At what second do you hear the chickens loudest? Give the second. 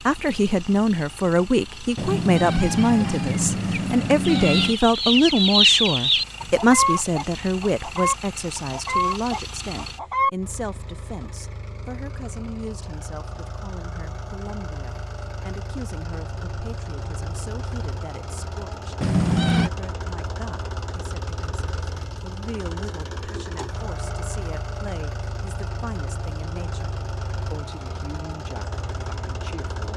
6 s.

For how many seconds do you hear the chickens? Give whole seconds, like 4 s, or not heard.
6 s.